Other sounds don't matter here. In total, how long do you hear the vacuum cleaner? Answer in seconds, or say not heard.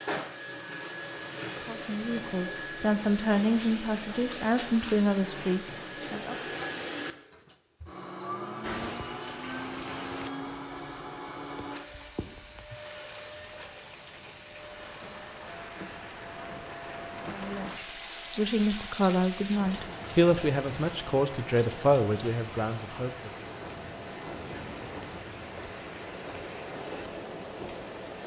28 s.